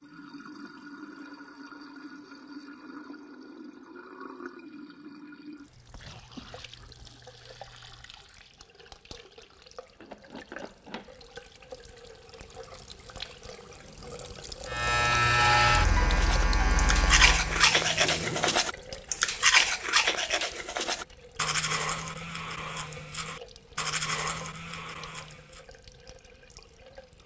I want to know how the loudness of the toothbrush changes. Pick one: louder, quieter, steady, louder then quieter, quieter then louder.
quieter.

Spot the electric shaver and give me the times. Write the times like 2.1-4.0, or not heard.
14.7-18.1.